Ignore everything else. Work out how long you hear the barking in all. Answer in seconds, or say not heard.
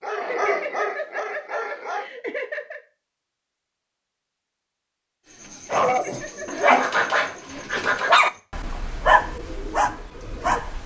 7 s.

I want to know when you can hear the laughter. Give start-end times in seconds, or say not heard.
0.2-2.8, 5.8-6.7.